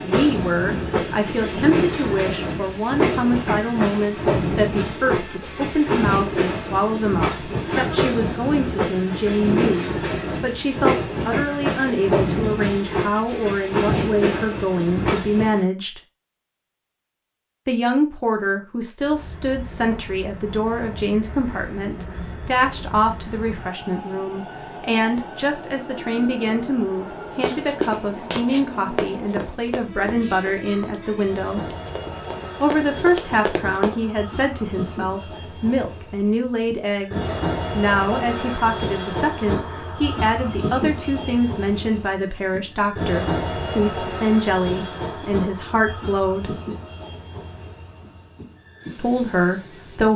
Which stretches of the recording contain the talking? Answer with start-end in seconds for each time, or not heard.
0.0-16.0, 17.6-31.6, 32.6-46.5, 49.0-50.1.